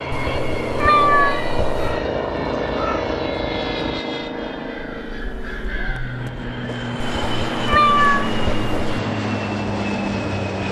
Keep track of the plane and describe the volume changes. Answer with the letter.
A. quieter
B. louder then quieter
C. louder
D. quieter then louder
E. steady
D.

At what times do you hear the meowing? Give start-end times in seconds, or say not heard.
0.1-2.0, 7.0-9.0.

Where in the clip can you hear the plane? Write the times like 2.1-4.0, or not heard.
0.0-10.6.